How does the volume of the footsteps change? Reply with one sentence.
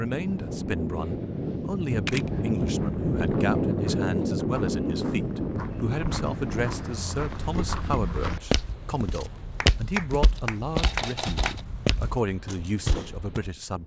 The loudness of the footsteps goes up.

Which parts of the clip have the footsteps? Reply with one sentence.
The footsteps can be heard from 2.8 to 13.4 s.